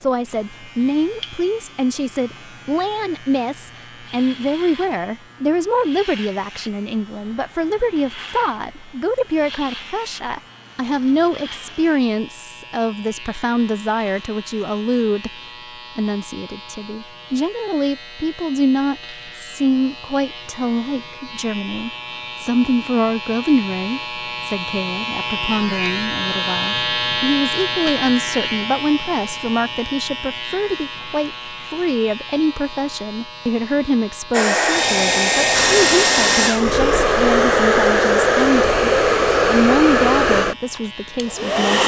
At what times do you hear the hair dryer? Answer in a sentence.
You can hear the hair dryer from 34.3 to 41.8 s.